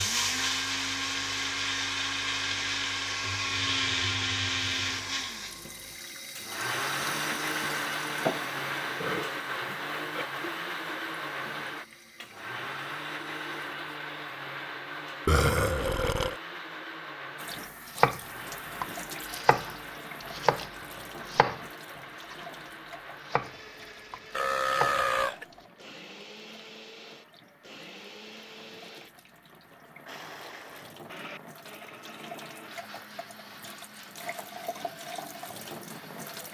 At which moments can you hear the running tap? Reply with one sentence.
You can hear the running tap from 4.8 to 14.0 s and from 17.4 to 36.4 s.